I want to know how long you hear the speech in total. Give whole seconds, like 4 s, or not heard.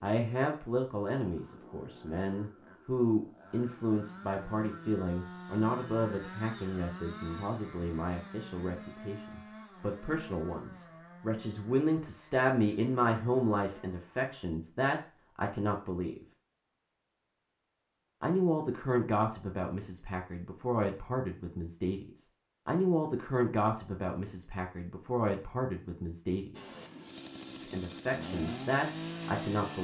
27 s.